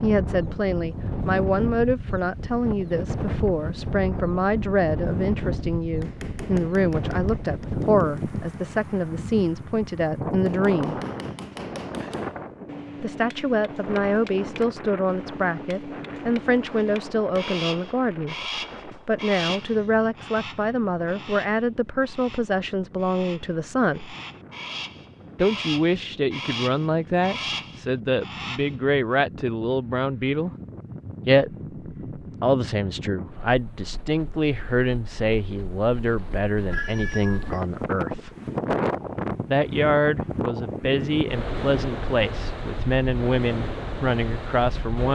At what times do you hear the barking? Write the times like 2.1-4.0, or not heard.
not heard.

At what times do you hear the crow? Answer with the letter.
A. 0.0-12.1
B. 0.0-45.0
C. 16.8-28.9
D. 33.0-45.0
C.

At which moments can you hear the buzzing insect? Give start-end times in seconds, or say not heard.
not heard.